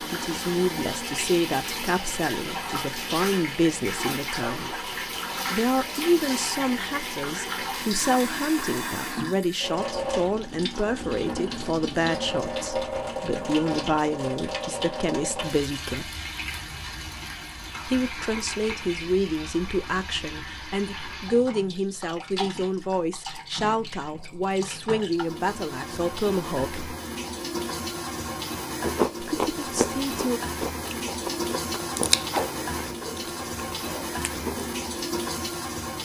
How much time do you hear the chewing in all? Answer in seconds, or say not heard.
6 s.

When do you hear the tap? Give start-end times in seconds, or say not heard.
0.0-36.0.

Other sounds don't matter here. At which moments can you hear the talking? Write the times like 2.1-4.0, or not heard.
0.0-4.8, 5.5-16.1, 17.9-26.9, 29.2-30.4.